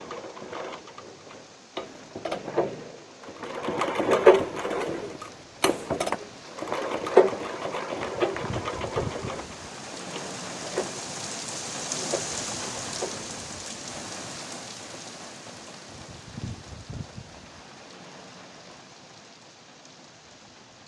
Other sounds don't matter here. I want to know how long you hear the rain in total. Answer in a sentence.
You can hear the rain for 21 seconds altogether.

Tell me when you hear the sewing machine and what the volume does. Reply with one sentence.
You can hear the sewing machine from 0.0 to 13.2 s, getting louder then quieter.